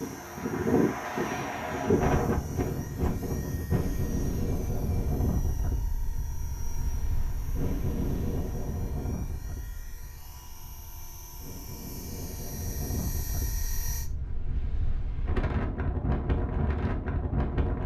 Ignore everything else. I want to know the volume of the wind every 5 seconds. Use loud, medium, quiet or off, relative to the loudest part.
loud, medium, quiet, loud.